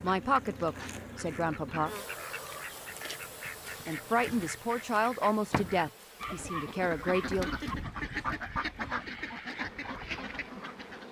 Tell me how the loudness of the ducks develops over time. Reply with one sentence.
The loudness of the ducks goes up.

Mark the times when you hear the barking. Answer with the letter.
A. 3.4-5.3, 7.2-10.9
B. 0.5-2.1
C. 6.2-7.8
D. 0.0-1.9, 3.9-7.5
C.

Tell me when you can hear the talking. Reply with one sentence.
The talking can be heard from 0.0 to 1.9 s and from 3.9 to 7.5 s.